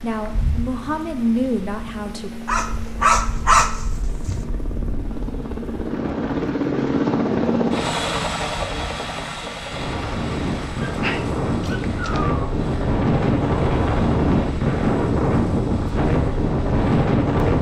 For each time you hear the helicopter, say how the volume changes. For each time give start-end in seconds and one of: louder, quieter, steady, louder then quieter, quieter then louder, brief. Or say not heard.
0.0-17.5 louder then quieter.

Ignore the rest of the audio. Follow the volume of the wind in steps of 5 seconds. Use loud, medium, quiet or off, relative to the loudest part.
quiet, quiet, loud, loud.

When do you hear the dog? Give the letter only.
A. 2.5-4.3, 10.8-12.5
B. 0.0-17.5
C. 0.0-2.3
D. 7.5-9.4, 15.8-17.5
A.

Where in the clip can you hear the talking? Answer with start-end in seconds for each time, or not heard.
0.0-2.3.